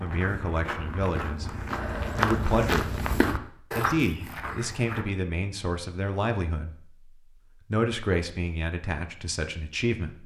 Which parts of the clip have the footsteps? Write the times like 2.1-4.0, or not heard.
0.0-5.0.